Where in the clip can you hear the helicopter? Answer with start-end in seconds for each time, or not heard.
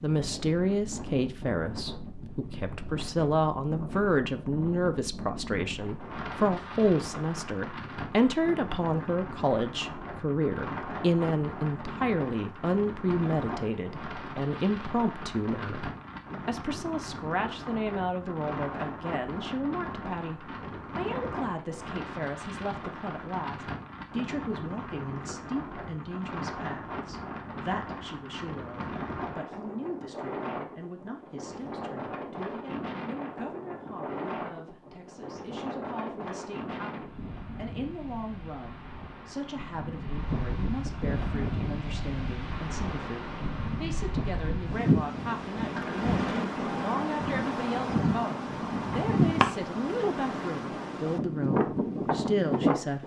not heard.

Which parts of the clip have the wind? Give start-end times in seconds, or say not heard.
0.0-53.0.